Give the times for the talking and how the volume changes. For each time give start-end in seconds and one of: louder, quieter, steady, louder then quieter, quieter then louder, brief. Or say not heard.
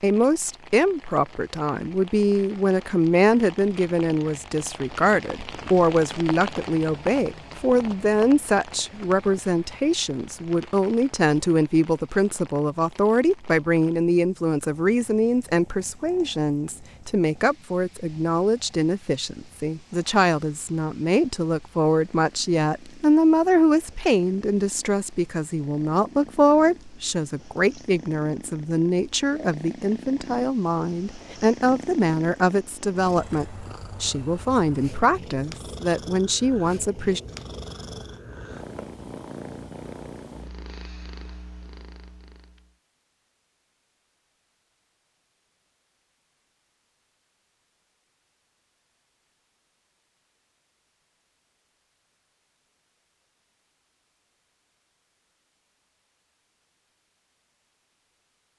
0.0-37.2 steady.